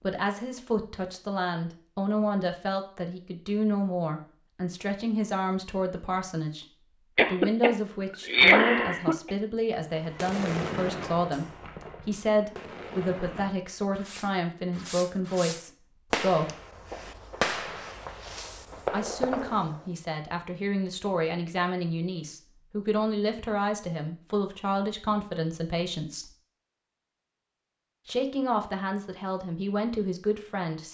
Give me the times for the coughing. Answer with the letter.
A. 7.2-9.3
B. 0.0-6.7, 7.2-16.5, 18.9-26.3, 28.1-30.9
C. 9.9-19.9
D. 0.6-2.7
A.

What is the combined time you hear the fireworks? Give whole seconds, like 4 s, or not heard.
10 s.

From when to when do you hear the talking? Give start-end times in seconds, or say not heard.
0.0-6.7, 7.2-16.5, 18.9-26.3, 28.1-30.9.